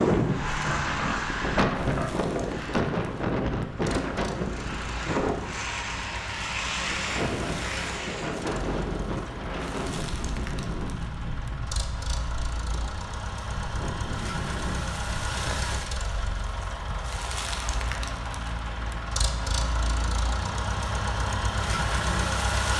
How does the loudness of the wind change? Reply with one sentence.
The loudness of the wind goes down.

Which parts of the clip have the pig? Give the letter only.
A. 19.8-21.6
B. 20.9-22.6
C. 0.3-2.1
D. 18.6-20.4
C.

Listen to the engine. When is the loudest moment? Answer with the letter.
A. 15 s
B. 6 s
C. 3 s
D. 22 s
D.